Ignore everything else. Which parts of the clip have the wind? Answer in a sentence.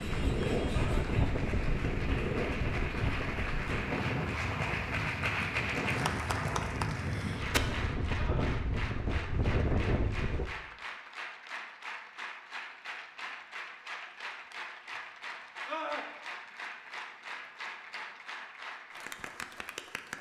You can hear the wind from 0.0 to 10.5 s.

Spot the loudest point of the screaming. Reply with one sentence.
The loudest moment of the screaming is at 16 seconds.